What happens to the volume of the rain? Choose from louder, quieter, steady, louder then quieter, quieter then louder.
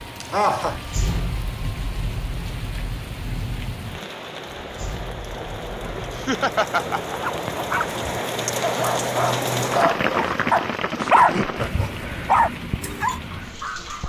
louder then quieter.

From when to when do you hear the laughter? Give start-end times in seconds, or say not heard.
0.2-0.8, 6.2-7.2, 11.0-12.2.